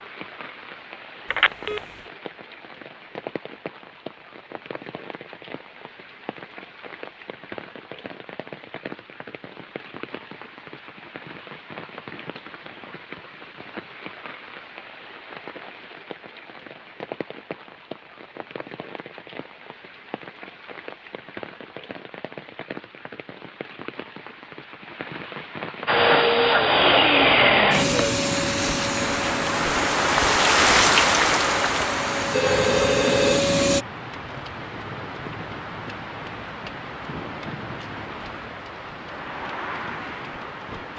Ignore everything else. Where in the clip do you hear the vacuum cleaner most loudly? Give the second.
27 s.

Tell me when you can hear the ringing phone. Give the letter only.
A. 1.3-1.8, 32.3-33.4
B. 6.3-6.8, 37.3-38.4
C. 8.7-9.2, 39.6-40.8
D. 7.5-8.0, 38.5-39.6
A.